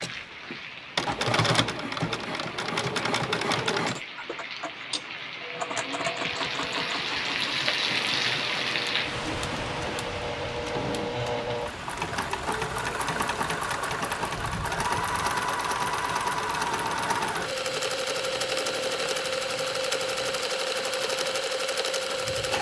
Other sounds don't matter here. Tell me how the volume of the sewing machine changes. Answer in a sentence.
The volume of the sewing machine goes down, then up.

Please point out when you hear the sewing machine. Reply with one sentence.
You can hear the sewing machine from 0.0 to 22.5 s.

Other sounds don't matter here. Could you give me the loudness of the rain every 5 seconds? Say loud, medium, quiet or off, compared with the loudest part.
medium, loud, medium, medium, medium.